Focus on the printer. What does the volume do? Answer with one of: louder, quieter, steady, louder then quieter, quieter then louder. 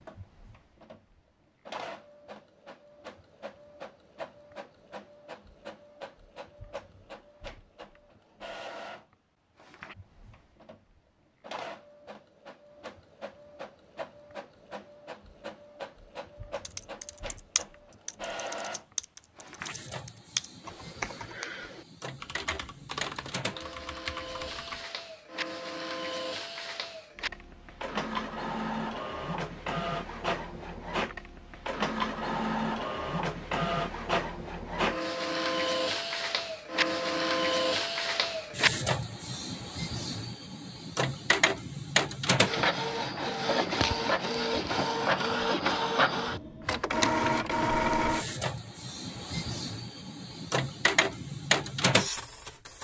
louder.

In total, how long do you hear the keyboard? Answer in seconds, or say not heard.
8 s.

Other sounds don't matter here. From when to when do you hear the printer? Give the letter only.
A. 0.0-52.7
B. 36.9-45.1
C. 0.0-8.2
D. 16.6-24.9
A.